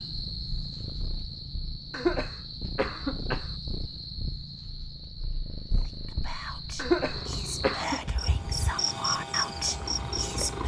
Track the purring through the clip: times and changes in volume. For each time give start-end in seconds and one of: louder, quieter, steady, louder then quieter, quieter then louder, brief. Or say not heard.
0.0-10.6 louder.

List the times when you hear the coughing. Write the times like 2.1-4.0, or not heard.
1.9-3.5, 6.8-8.0.